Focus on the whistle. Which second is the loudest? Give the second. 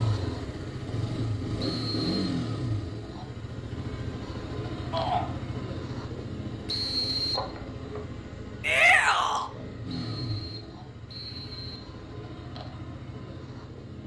7 s.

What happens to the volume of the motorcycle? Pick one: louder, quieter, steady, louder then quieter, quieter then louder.
quieter.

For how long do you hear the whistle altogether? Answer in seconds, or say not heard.
3 s.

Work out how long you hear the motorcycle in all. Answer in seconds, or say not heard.
14 s.